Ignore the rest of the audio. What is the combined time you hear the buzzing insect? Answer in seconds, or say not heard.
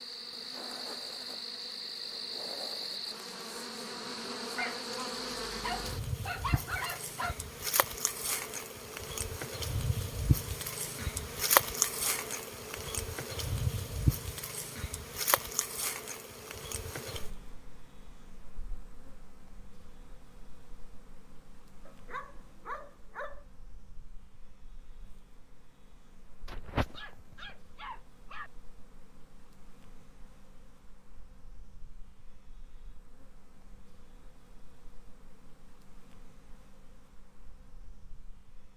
39 s.